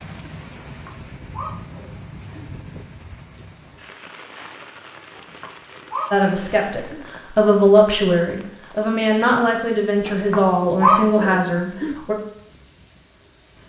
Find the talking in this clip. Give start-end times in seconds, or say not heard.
6.1-12.2.